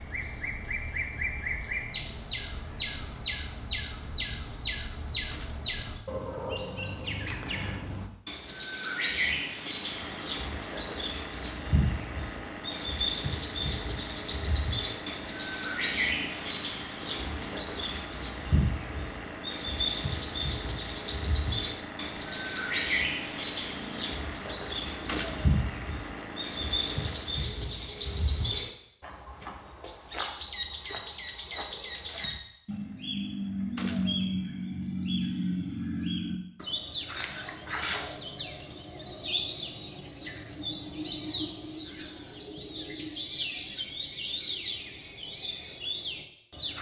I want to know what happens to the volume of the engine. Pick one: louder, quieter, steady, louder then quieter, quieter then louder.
steady.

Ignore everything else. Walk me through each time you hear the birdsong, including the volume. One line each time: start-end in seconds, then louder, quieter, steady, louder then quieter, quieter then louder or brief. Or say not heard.
0.0-46.7 steady.